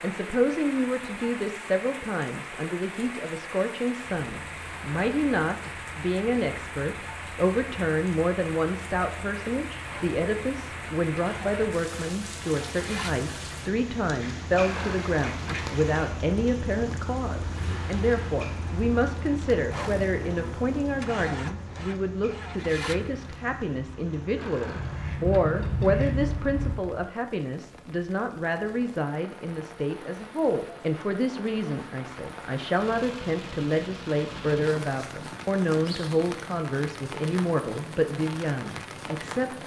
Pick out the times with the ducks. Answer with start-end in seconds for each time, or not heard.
14.6-16.1, 24.8-26.8.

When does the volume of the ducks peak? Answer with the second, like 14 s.
26 s.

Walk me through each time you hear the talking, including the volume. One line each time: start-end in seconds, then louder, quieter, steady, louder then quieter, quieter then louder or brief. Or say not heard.
0.0-39.6 steady.